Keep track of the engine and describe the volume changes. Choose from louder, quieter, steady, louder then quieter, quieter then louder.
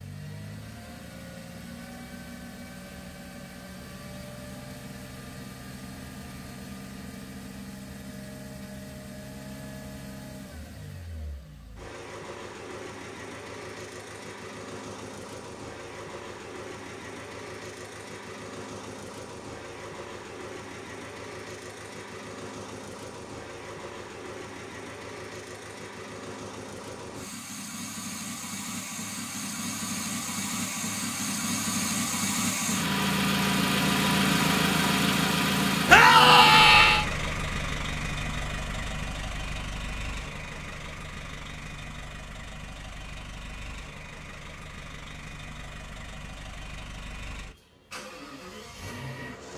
louder then quieter.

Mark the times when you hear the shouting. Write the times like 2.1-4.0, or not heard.
35.9-37.0.